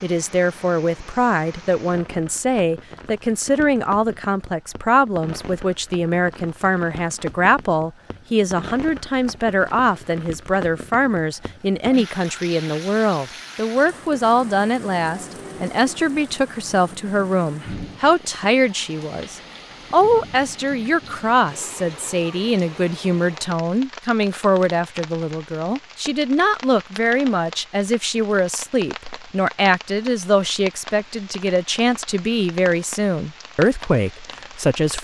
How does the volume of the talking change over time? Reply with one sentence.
The loudness of the talking stays about the same.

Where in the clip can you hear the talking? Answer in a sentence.
You can hear the talking from 0.0 to 34.9 s.